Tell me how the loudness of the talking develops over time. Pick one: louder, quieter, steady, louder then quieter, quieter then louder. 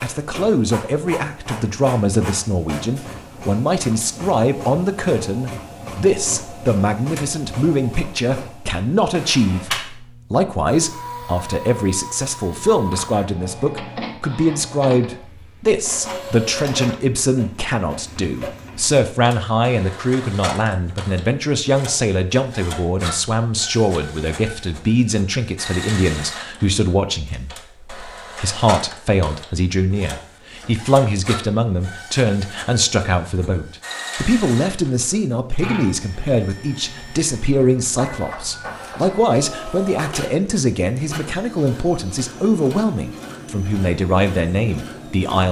steady.